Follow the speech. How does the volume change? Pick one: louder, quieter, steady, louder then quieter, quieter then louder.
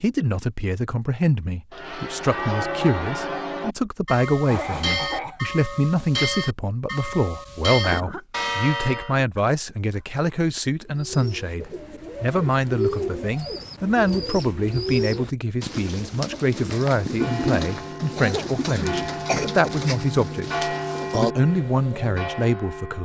steady.